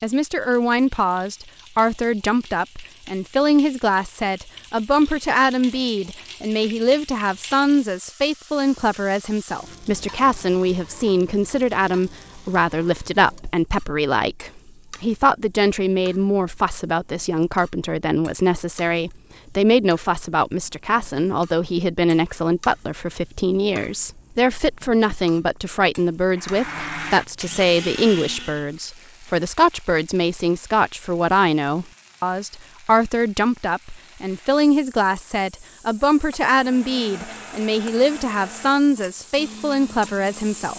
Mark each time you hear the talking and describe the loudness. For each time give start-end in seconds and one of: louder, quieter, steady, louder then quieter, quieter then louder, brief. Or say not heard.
0.0-40.7 steady.